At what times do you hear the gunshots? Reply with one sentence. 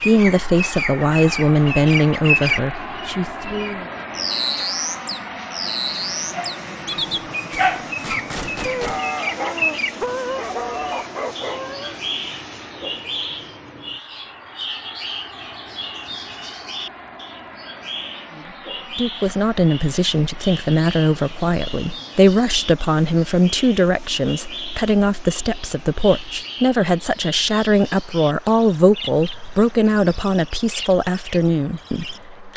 You can hear the gunshots from 7.5 to 9.0 s.